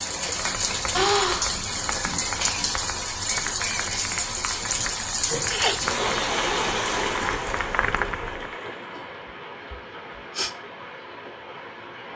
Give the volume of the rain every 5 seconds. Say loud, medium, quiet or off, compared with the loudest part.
loud, loud, quiet.